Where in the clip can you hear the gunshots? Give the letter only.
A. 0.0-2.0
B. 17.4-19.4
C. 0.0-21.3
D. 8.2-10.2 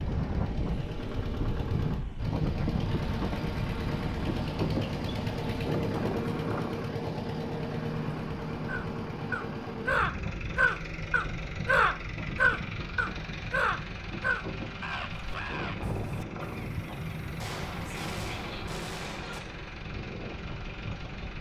B.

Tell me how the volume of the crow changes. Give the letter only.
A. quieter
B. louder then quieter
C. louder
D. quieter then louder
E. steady
A.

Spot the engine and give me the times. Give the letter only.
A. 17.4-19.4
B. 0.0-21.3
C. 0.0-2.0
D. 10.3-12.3
B.